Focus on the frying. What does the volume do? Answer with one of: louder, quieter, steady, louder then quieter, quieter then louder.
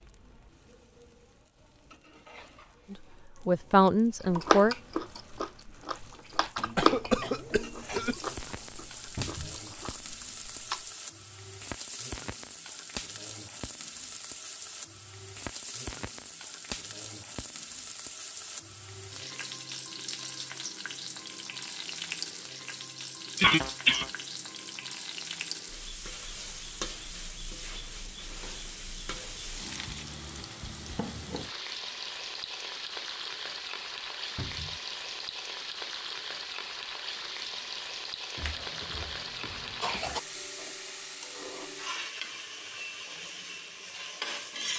louder.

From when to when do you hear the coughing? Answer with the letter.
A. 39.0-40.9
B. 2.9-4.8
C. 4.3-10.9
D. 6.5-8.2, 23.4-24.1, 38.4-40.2
D.